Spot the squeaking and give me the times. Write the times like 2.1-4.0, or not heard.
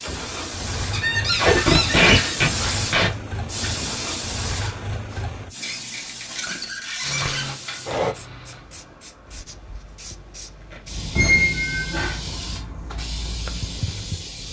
0.9-2.4, 5.6-7.5, 11.2-12.2.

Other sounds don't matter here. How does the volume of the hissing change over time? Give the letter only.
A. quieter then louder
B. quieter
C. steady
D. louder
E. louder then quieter
A.